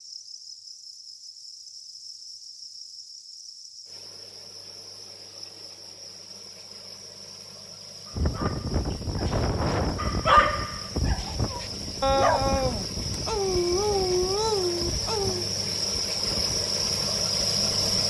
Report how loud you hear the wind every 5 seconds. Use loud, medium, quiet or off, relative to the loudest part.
off, loud, medium, quiet.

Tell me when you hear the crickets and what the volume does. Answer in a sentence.
The crickets can be heard from 0.0 to 18.0 s, getting louder.